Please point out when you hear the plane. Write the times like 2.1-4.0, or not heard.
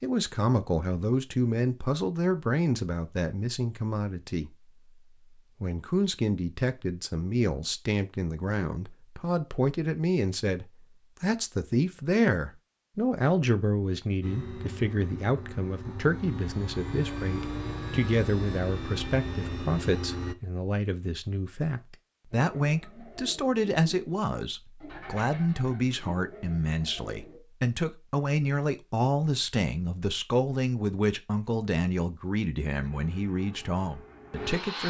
14.2-20.4, 32.8-34.8.